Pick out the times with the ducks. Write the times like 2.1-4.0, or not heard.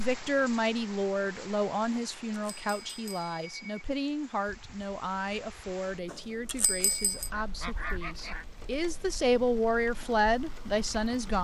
6.8-8.4.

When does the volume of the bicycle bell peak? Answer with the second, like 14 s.
7 s.